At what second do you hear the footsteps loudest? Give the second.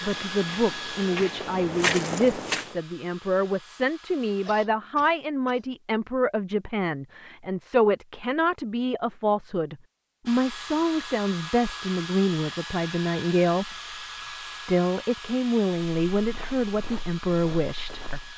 2 s.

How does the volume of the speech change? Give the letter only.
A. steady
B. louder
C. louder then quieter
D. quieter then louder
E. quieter
A.